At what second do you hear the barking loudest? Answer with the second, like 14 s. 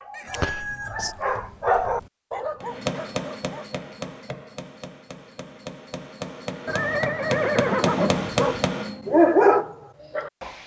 9 s.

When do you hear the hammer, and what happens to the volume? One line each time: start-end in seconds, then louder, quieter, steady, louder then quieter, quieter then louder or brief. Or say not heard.
2.6-9.1 quieter then louder.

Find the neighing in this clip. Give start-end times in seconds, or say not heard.
0.1-1.1, 6.7-8.3.